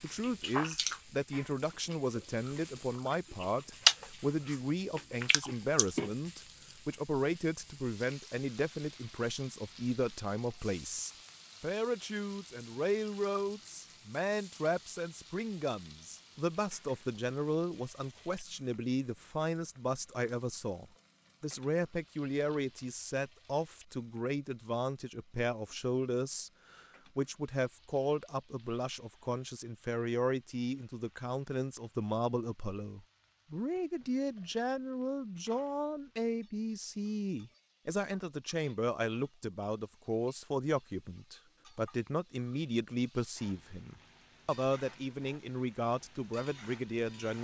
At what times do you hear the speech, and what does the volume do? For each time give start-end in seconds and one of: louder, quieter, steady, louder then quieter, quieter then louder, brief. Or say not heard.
0.0-47.3 steady.